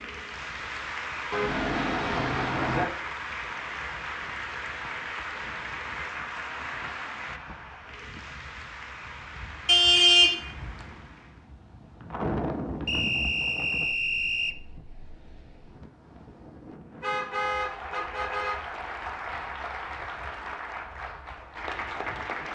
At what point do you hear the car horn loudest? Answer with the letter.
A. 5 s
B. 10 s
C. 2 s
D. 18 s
B.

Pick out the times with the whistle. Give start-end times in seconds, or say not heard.
12.8-14.6.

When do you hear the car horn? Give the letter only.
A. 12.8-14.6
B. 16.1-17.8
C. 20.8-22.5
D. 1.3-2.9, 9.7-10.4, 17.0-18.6
D.